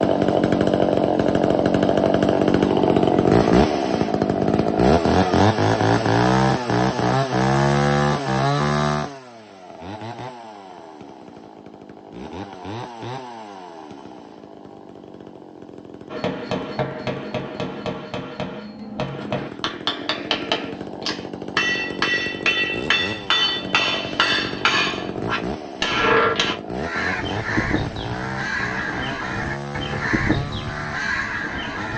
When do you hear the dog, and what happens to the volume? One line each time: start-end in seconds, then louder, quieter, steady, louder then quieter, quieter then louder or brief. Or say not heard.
not heard.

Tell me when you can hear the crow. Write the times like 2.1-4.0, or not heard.
26.8-31.9.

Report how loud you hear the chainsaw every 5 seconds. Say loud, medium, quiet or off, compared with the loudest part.
loud, loud, quiet, quiet, quiet, quiet, quiet.